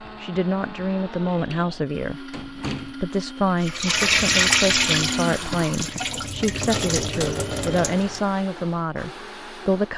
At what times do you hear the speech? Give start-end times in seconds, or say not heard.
0.0-9.9.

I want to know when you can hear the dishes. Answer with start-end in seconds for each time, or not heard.
not heard.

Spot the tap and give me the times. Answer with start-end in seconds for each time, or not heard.
3.6-8.2.